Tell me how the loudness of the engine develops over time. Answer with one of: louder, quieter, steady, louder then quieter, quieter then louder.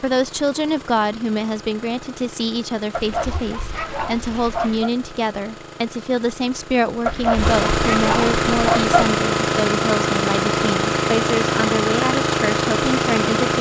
louder.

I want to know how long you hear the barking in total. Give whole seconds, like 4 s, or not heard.
4 s.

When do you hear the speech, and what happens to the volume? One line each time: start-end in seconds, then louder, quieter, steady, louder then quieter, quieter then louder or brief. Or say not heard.
0.0-13.5 steady.